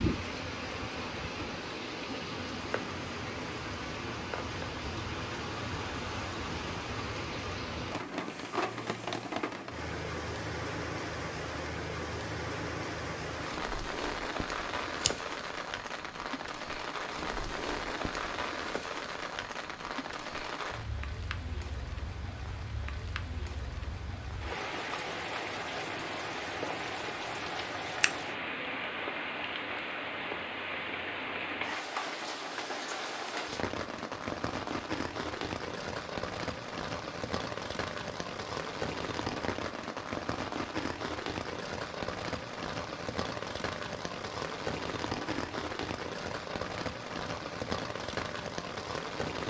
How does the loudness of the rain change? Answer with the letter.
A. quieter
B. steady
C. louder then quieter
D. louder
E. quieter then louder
B.